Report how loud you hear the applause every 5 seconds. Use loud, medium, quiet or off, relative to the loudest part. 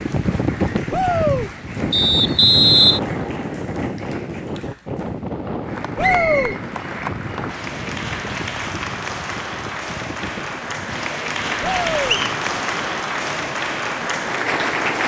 quiet, medium, loud.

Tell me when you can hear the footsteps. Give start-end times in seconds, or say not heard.
not heard.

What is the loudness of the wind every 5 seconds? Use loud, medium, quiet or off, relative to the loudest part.
loud, medium, quiet.